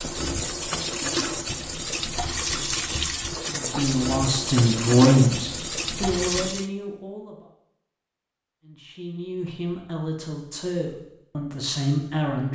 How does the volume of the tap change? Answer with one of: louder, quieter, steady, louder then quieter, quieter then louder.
steady.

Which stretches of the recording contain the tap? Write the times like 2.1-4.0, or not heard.
0.0-6.7.